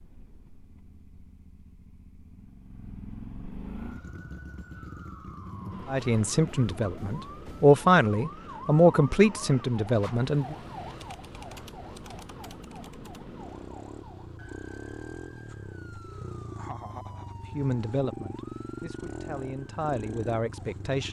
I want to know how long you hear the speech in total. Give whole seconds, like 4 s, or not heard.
8 s.